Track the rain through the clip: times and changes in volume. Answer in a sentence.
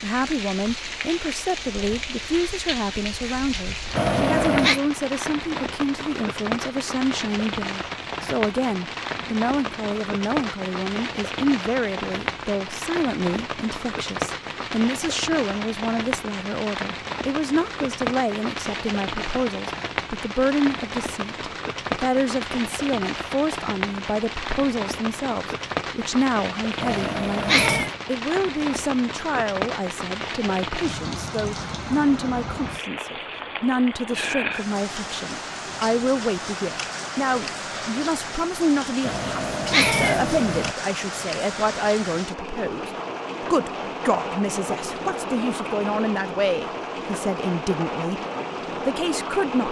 You can hear the rain from 0.0 to 49.6 s, at a steady volume.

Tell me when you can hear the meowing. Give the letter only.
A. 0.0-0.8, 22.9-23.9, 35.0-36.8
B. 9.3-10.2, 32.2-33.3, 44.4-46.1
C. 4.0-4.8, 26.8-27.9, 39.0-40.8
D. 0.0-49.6
C.